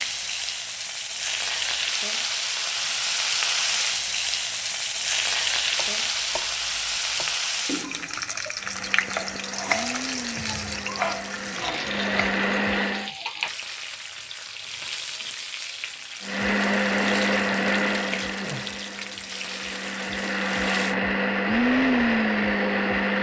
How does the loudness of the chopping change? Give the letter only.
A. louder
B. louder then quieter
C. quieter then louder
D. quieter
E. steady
A.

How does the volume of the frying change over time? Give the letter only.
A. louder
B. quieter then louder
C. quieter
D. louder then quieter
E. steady
C.